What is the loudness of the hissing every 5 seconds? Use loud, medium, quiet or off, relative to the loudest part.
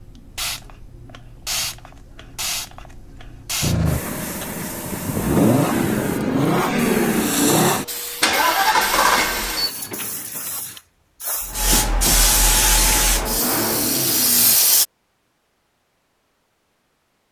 medium, medium, loud, off.